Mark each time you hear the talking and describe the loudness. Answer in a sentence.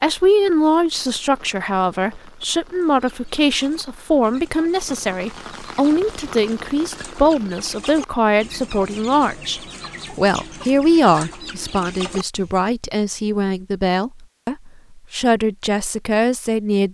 The talking can be heard from 0.0 to 16.8 s, at a steady volume.